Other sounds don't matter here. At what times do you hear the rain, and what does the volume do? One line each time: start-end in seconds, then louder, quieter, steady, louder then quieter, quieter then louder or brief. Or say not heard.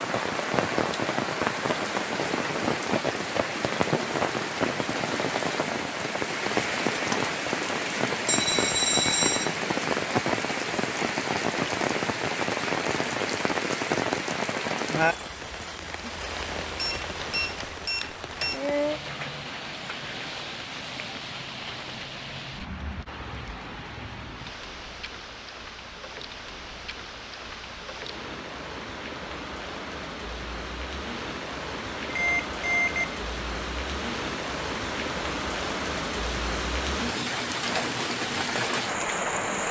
0.0-39.6 quieter then louder.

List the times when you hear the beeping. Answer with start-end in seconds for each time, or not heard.
8.2-9.5, 16.8-18.6, 32.1-33.1.